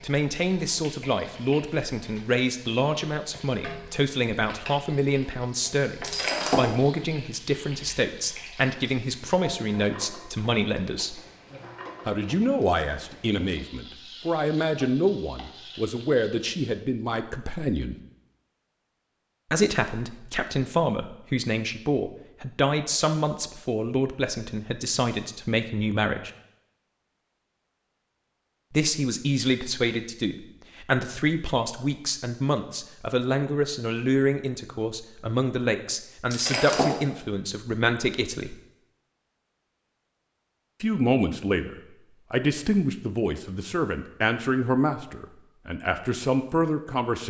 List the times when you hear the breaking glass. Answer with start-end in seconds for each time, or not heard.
6.0-6.7, 36.3-37.1.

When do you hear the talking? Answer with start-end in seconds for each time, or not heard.
0.0-11.2, 12.1-17.9, 19.5-26.3, 28.7-38.5, 40.8-47.2.